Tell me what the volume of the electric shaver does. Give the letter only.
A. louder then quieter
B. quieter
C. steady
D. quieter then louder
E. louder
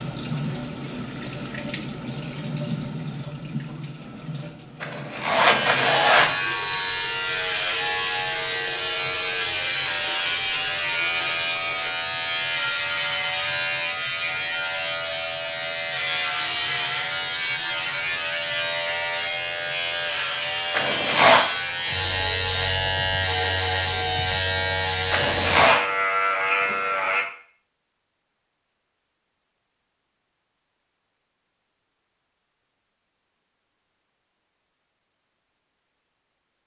C.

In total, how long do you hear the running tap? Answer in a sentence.
You can hear the running tap for 12 seconds altogether.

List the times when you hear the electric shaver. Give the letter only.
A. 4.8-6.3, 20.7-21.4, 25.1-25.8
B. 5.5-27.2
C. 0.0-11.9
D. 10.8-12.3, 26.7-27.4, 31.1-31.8
B.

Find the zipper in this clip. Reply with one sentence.
The zipper can be heard from 4.8 to 6.3 s, from 20.7 to 21.4 s and from 25.1 to 25.8 s.